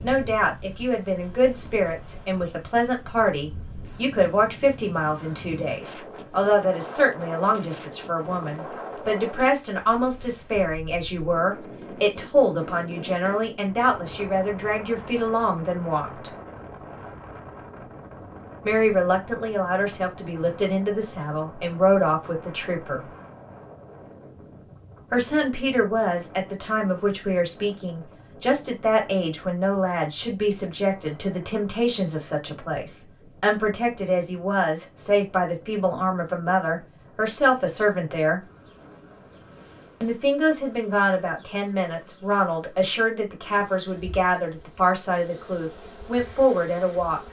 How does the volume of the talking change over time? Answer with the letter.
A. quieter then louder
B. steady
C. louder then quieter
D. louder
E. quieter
B.